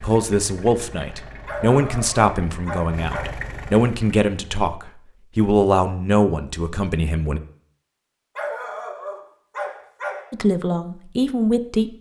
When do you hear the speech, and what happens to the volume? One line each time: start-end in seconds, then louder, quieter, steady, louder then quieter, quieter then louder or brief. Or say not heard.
0.0-7.4 steady
10.3-11.9 brief.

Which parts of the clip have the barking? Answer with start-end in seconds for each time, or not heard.
1.4-3.4, 8.3-10.3.